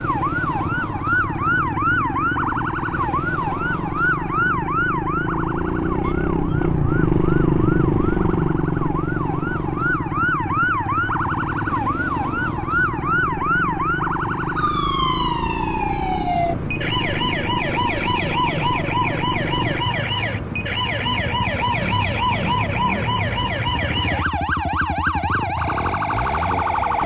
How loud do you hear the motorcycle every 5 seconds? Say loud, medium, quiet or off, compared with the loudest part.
medium, loud, medium, medium, medium, medium.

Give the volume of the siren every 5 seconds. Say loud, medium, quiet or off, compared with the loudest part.
loud, medium, loud, loud, loud, loud.